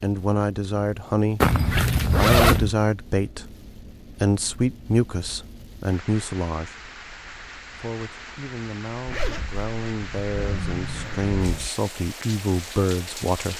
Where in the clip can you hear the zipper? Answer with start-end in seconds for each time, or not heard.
1.4-2.8, 9.1-11.7.